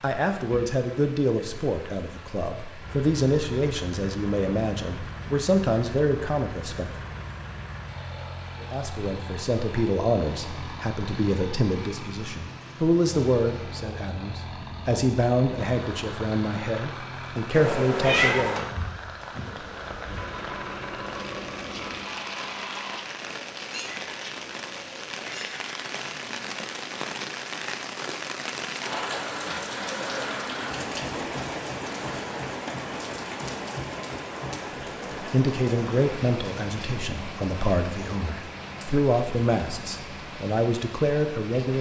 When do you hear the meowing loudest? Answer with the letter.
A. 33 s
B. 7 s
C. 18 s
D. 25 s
C.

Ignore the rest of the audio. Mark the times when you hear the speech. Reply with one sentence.
You can hear the speech from 0.0 to 6.9 s, from 8.6 to 18.7 s and from 35.2 to 41.7 s.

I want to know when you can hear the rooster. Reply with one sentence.
You can't hear the rooster here.